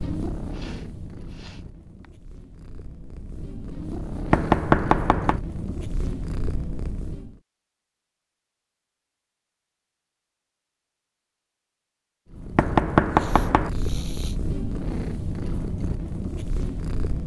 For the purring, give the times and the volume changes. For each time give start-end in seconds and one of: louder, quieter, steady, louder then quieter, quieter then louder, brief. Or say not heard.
0.0-7.4 quieter then louder
12.3-17.2 steady.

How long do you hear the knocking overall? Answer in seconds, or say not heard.
2 s.